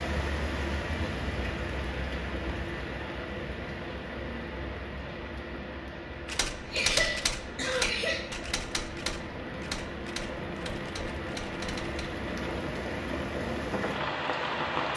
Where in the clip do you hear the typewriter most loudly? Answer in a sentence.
The loudest moment of the typewriter is at 7 seconds.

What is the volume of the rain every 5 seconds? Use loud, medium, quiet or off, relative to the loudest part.
loud, medium, loud.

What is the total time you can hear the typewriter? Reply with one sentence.
The typewriter can be heard for 6 seconds in total.